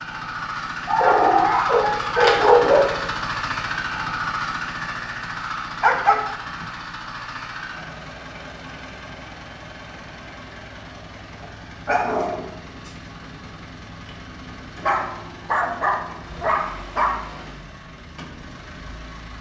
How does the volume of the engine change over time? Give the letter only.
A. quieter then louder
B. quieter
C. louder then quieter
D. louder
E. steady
B.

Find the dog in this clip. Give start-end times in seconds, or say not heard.
0.8-2.9, 5.8-6.7, 11.4-12.4, 14.8-17.4.